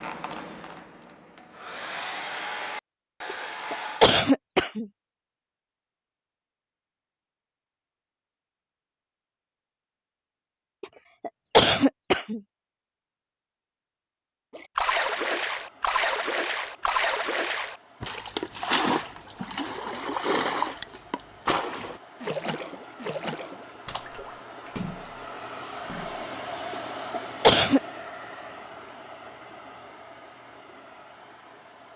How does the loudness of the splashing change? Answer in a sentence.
The loudness of the splashing goes down.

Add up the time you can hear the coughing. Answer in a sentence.
You can hear the coughing for 4 seconds altogether.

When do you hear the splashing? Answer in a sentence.
The splashing can be heard from 14.6 to 26.2 s.